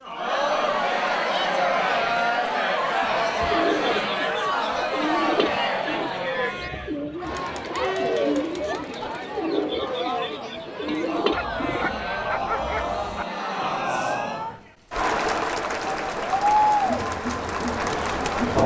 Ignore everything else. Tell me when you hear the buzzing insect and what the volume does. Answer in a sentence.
The buzzing insect can't be heard in this clip.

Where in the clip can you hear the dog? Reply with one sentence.
The dog can be heard from 11.3 to 13.2 s.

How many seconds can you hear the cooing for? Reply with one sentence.
You can hear the cooing for 9 seconds altogether.